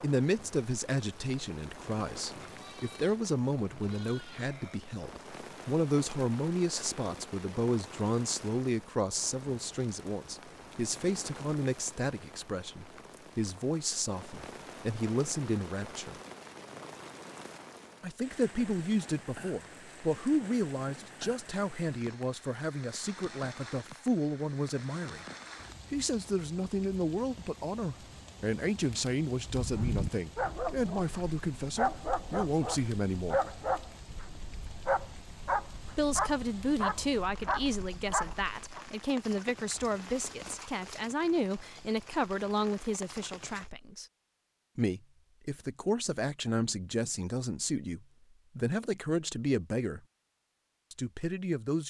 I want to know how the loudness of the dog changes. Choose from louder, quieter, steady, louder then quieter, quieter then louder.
steady.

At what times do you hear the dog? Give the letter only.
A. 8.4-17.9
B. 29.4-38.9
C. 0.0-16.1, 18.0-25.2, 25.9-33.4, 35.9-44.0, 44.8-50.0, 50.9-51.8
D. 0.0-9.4
B.